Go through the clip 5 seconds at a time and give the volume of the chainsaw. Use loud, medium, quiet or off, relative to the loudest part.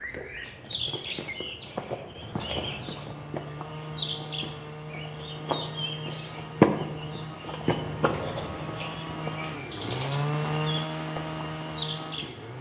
medium, medium, loud.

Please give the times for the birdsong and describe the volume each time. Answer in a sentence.
You can hear the birdsong from 0.0 to 12.5 s, getting louder then quieter.